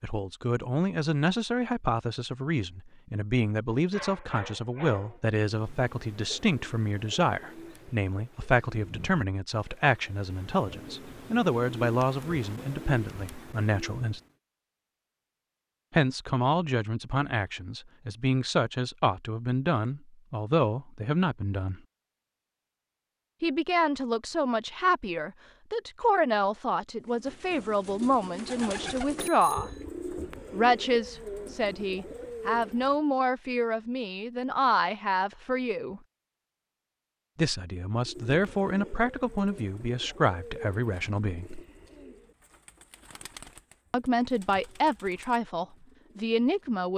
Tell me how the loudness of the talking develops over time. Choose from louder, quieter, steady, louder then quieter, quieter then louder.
steady.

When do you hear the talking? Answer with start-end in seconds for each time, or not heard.
0.0-14.2, 15.9-21.8, 23.4-29.7, 30.5-36.0, 37.4-41.6, 43.9-46.9.